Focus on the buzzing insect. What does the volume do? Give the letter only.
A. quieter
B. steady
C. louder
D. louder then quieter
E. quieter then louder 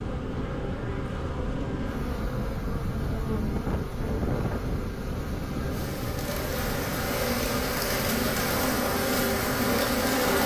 C.